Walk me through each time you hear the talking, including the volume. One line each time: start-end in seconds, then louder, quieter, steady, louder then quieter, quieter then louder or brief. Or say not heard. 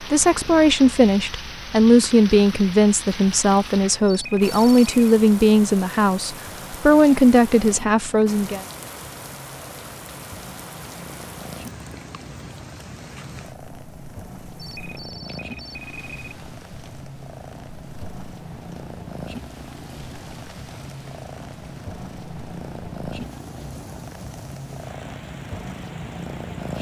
0.0-8.7 steady.